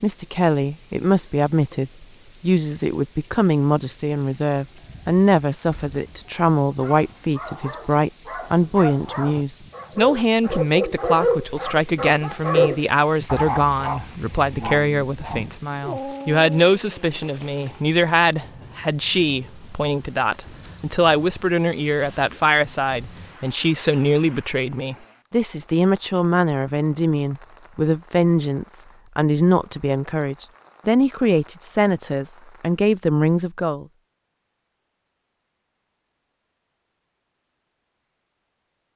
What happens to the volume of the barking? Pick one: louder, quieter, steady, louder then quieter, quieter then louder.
louder then quieter.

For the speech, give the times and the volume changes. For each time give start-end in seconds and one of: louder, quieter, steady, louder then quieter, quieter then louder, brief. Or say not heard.
0.0-33.9 steady.